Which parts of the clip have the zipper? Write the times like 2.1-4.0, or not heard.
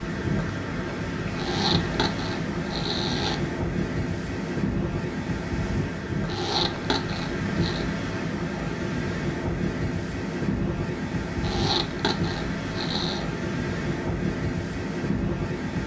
1.4-3.4, 6.2-7.8, 11.4-13.2.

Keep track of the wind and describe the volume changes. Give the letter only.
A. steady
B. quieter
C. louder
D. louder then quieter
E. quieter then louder
A.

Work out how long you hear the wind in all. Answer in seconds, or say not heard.
16 s.